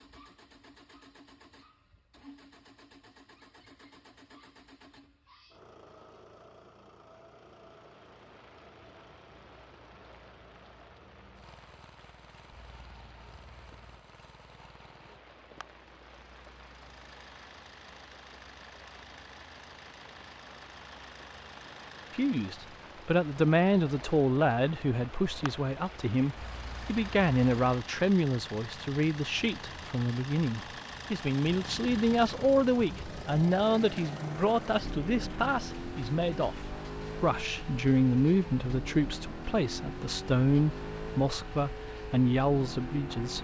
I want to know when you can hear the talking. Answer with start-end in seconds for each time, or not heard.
22.1-43.3.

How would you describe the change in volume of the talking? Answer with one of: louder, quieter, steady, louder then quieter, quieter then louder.
steady.